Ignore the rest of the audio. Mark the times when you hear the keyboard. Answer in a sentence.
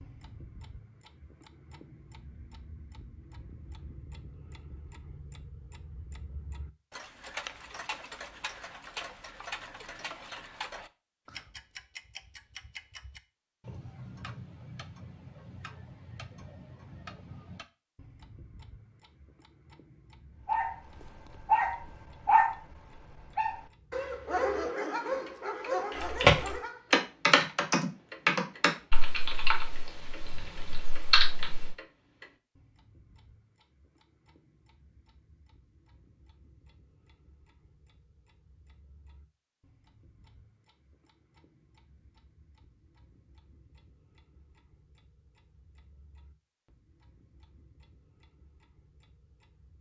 You can hear the keyboard from 25.9 to 31.8 s.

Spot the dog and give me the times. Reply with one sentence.
You can hear the dog from 20.4 to 26.9 s.